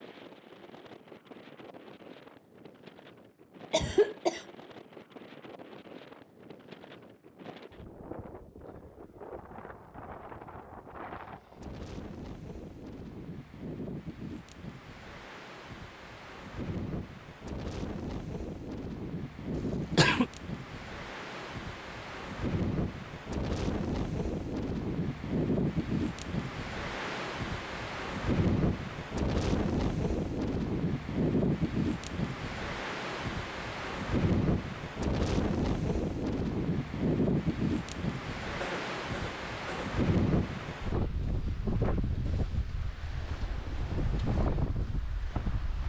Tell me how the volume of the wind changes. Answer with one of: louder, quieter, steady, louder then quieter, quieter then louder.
louder.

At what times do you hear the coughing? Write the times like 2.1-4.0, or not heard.
3.7-4.5, 19.5-20.3, 38.6-39.9.